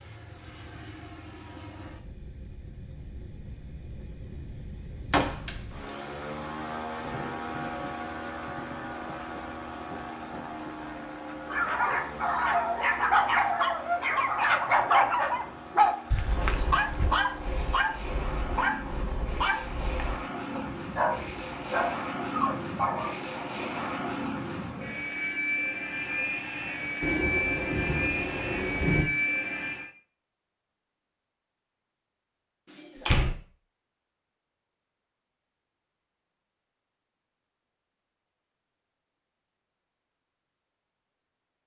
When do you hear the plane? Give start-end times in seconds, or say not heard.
0.0-29.9.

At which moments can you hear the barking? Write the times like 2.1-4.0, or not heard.
11.2-23.4.